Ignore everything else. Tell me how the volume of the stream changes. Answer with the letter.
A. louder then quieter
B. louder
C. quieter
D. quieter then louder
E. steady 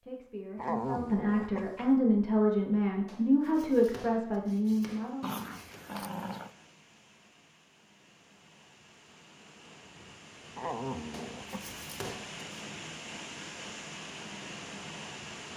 B.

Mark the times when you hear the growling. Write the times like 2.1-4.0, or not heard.
0.6-1.9, 5.2-6.5, 10.6-11.8.